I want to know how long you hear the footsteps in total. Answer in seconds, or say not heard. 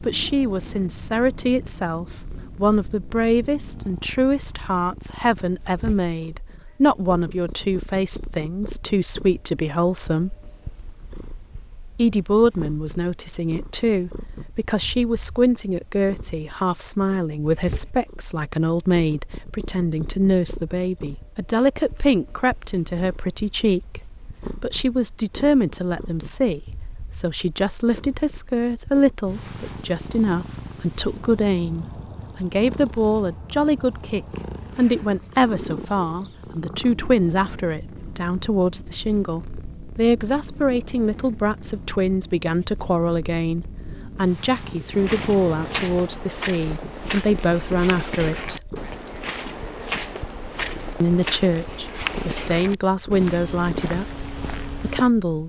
10 s.